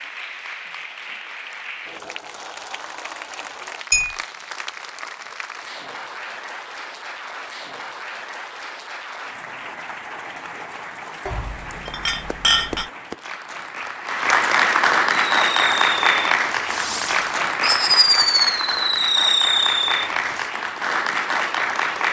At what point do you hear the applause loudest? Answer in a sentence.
The volume of the applause peaks at 15 seconds.